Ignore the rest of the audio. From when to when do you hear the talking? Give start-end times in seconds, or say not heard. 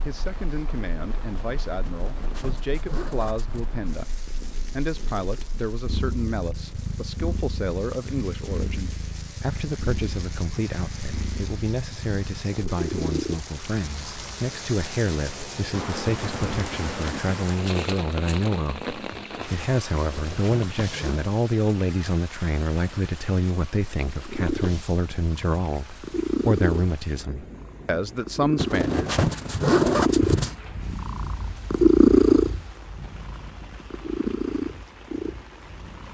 0.1-29.1.